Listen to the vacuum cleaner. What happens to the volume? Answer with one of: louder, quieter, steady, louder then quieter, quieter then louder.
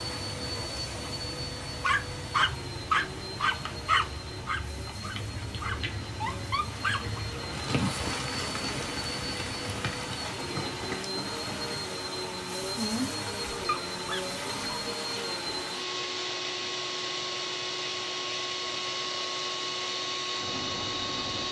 louder.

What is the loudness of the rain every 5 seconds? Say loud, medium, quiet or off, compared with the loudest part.
medium, loud, loud, medium, medium.